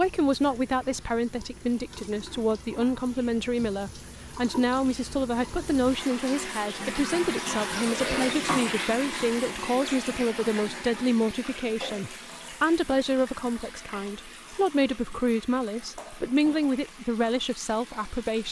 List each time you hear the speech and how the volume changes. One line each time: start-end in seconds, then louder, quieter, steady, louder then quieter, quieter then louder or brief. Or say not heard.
0.0-18.4 steady.